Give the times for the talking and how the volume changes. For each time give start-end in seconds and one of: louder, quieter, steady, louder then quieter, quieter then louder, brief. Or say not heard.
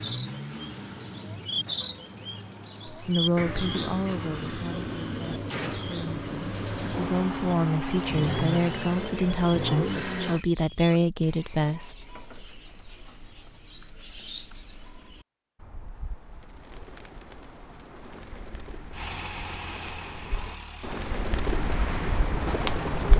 2.9-12.1 quieter then louder.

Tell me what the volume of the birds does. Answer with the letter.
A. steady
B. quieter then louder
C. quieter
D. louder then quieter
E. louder
B.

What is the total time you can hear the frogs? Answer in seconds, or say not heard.
not heard.